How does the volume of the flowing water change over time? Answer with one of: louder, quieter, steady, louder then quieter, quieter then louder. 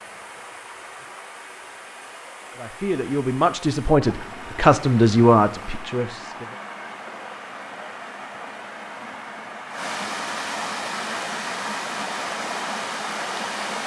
louder.